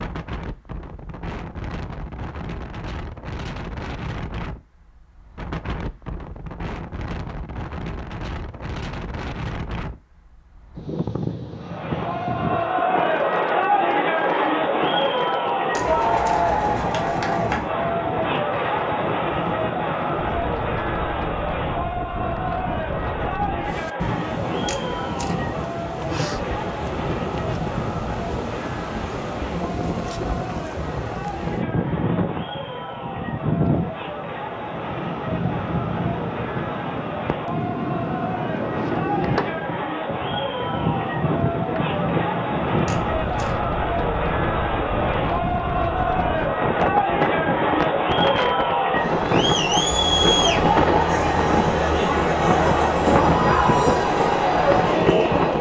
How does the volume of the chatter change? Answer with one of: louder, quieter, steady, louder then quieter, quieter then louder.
quieter then louder.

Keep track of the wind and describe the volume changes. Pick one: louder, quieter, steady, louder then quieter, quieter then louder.
louder.